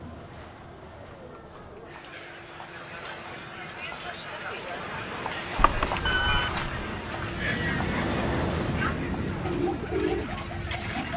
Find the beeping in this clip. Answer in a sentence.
The beeping can be heard from 5.5 to 7.0 s.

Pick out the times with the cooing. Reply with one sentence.
The cooing can be heard from 9.4 to 11.1 s.